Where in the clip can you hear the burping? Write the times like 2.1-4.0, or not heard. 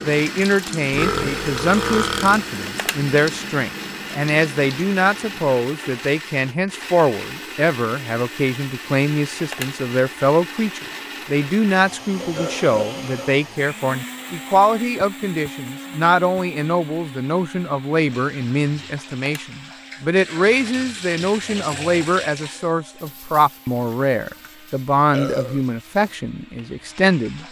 0.9-2.5, 12.2-13.3, 25.1-25.6.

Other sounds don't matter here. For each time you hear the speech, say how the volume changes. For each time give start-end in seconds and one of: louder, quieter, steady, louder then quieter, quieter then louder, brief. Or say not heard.
0.0-27.4 steady.